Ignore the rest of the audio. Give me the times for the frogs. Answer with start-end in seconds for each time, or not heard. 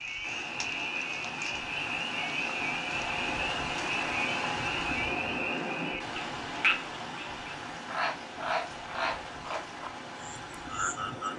0.0-11.3.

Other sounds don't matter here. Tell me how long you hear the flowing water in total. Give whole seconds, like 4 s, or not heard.
11 s.